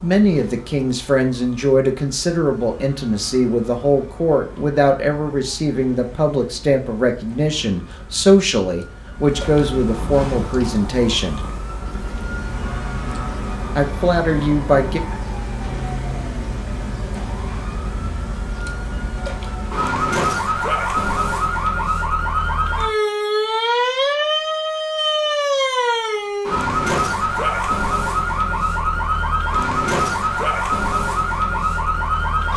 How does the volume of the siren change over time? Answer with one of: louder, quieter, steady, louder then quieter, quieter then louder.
louder.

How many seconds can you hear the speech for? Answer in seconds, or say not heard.
13 s.